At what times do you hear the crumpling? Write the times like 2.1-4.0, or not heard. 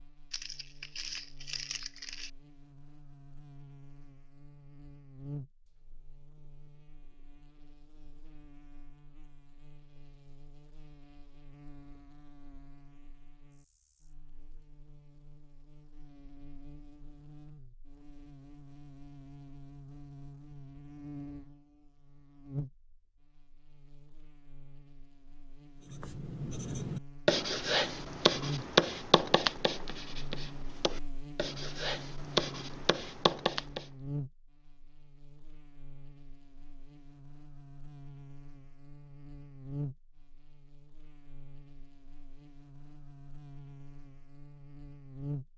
0.3-2.3.